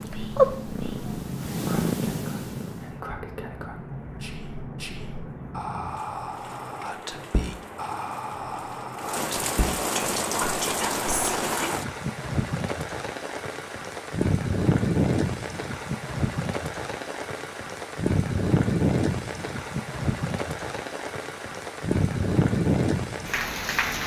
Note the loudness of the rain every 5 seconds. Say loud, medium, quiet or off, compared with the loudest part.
medium, medium, loud, loud, loud.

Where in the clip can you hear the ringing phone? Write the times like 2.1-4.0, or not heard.
not heard.